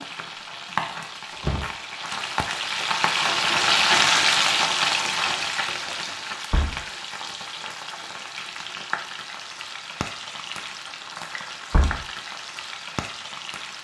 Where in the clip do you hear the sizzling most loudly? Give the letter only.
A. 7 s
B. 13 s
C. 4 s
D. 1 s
C.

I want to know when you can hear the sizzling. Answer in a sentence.
The sizzling can be heard from 0.0 to 13.8 s.